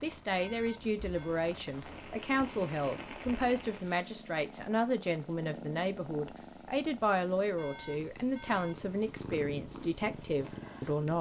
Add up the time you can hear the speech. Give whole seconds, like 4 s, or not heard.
11 s.